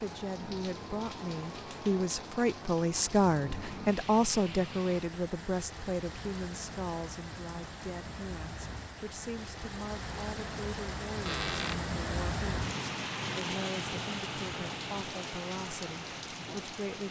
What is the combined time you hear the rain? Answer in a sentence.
You can hear the rain for 17 seconds altogether.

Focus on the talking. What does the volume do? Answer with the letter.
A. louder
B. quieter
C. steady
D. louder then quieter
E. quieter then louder
B.